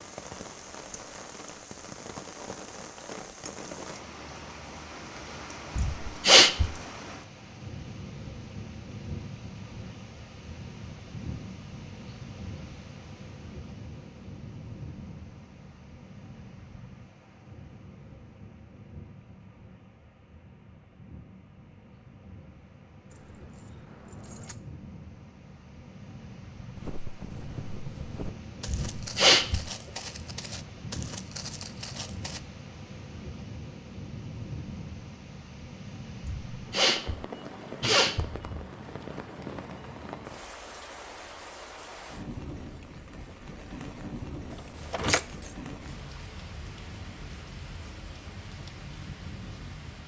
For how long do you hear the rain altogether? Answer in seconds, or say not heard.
50 s.